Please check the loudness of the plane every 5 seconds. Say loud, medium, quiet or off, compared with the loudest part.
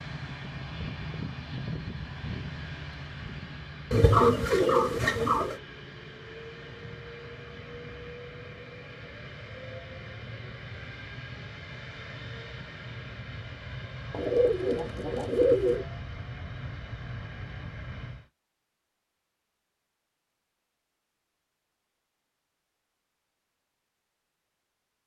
loud, medium, loud, loud, off.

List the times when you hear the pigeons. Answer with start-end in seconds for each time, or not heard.
3.9-5.5, 14.1-15.8.